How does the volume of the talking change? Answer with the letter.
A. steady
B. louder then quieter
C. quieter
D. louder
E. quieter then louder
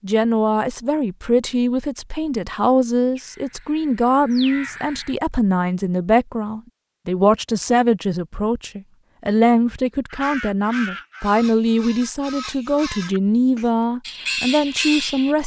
A.